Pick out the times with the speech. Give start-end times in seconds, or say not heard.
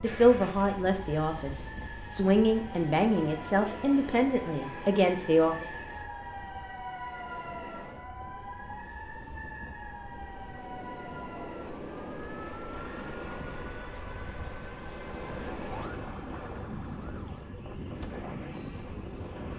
0.0-5.7.